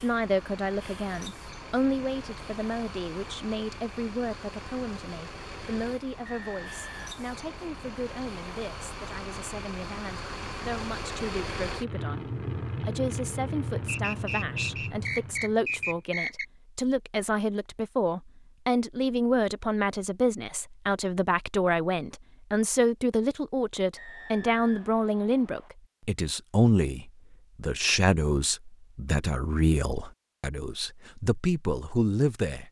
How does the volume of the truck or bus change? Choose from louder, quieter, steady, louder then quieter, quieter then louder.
louder.